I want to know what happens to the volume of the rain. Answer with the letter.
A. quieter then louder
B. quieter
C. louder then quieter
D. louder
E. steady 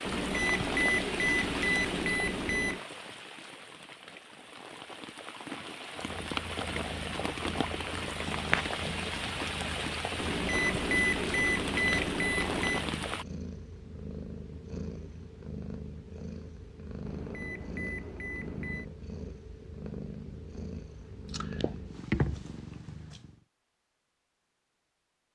A.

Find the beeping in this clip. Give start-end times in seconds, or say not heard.
0.1-2.8, 10.2-12.8, 17.1-18.9.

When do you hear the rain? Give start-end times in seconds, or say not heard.
0.0-13.2.